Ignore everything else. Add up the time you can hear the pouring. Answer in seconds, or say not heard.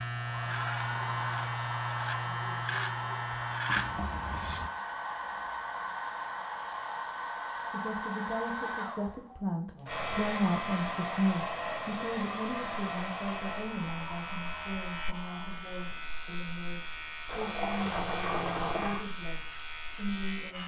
4 s.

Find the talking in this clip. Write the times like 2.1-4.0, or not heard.
7.7-20.6.